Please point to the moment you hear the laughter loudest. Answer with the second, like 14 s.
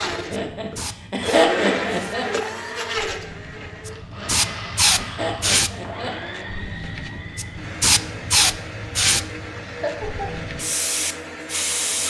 2 s.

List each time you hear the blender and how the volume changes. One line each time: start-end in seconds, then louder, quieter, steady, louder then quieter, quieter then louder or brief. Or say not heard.
0.0-12.0 quieter.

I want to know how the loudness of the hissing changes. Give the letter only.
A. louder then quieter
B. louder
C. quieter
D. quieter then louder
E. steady
A.